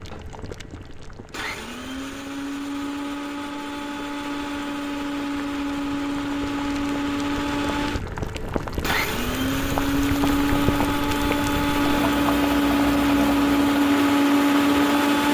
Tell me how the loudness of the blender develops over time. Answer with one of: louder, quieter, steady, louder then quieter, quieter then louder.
louder.